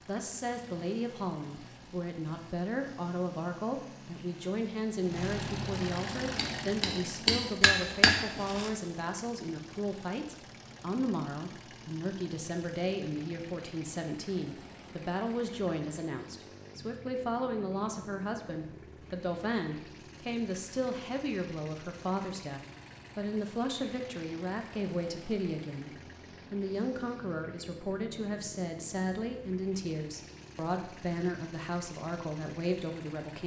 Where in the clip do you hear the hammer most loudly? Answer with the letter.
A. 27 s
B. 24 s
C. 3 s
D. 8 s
D.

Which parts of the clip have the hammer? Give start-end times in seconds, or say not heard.
6.3-8.7.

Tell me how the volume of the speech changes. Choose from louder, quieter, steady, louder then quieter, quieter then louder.
steady.